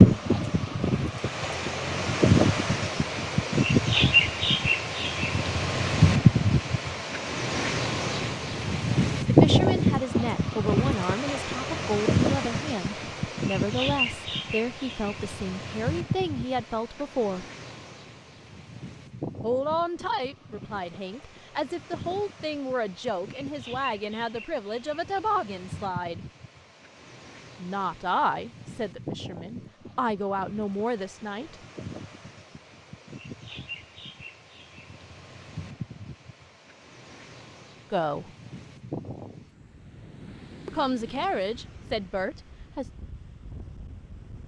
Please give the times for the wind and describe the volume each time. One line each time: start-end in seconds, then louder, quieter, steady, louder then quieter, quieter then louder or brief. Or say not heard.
0.0-44.4 quieter.